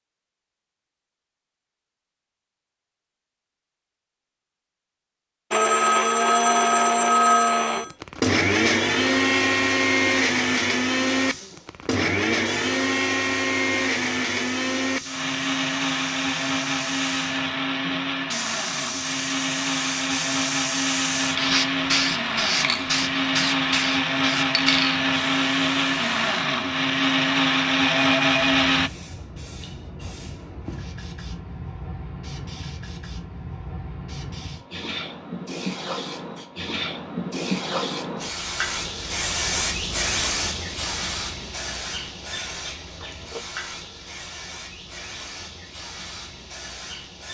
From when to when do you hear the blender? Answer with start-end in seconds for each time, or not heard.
5.5-28.9.